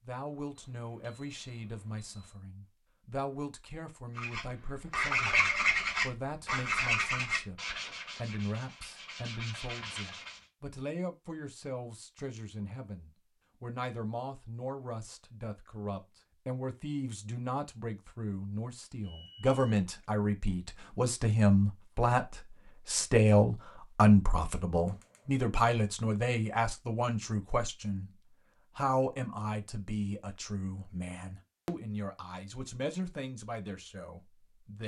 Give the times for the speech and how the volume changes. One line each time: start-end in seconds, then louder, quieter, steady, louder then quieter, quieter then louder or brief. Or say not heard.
0.1-34.8 louder then quieter.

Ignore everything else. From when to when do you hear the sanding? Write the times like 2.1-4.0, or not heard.
4.2-10.4.